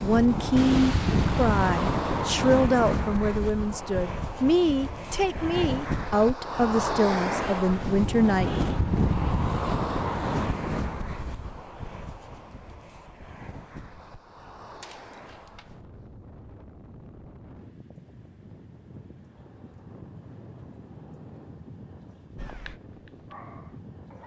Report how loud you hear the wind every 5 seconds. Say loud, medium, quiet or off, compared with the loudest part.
loud, loud, medium, quiet, quiet.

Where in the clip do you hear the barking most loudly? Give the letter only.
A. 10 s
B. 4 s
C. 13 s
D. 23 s
D.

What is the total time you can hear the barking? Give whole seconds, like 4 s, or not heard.
2 s.